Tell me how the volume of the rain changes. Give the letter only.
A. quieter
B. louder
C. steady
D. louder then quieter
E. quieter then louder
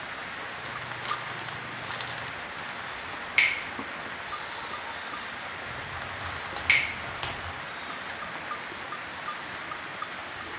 C.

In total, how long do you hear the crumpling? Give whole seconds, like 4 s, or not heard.
4 s.